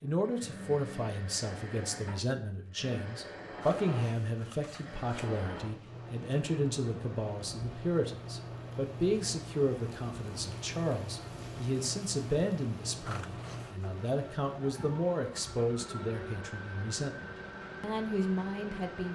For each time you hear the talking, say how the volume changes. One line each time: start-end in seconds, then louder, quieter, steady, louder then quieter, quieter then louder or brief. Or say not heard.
0.0-19.1 steady.